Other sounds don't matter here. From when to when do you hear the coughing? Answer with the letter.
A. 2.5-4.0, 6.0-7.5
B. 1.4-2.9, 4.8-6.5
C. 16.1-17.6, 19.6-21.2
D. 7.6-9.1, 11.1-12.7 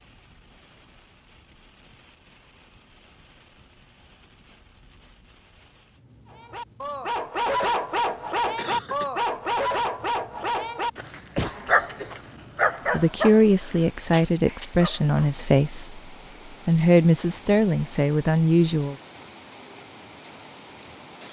D.